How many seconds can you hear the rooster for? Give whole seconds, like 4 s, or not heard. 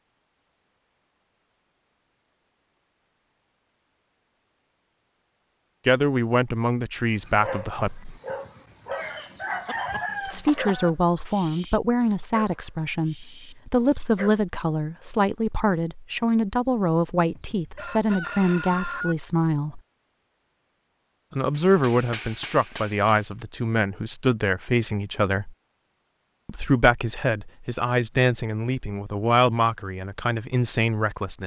4 s.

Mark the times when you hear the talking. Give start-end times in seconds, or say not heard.
5.8-8.2, 10.2-19.8, 21.3-25.6, 26.4-31.4.